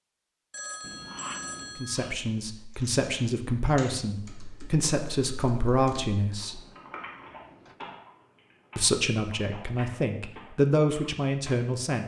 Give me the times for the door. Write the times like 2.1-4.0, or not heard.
0.8-1.9, 6.4-7.8.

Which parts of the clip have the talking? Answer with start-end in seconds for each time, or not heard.
1.8-6.6, 8.8-12.0.